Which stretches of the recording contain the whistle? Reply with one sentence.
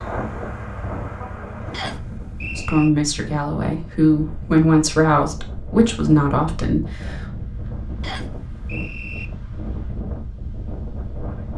You can hear the whistle from 1.7 to 2.9 s and from 8.0 to 9.2 s.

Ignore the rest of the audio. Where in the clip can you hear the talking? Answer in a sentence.
The talking can be heard from 2.5 to 7.3 s.